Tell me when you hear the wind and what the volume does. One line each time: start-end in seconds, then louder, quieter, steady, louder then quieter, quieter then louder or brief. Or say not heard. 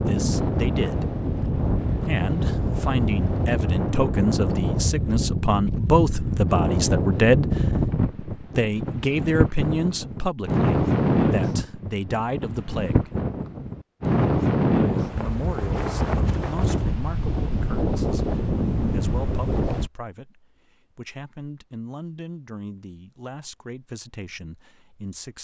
0.0-19.9 steady.